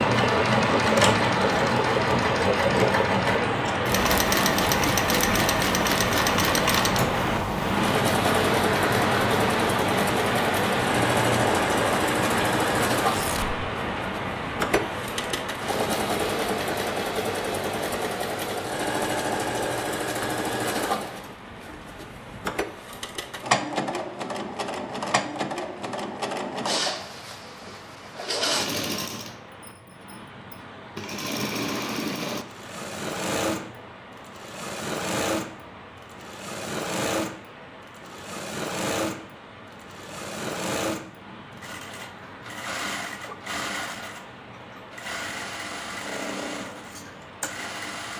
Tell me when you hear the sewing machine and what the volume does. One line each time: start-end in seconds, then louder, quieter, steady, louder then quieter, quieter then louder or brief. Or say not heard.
0.0-48.1 quieter.